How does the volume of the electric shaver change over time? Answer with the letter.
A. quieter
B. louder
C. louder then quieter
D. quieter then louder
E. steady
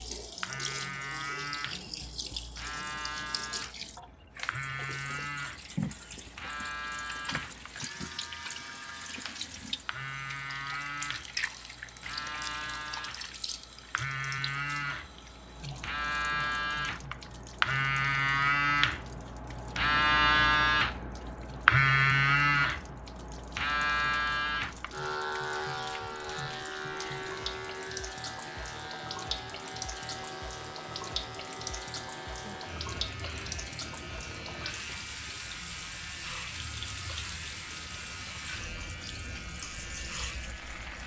C.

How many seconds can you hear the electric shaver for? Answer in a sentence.
The electric shaver can be heard for 41 seconds in total.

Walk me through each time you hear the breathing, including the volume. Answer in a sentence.
You can't hear the breathing here.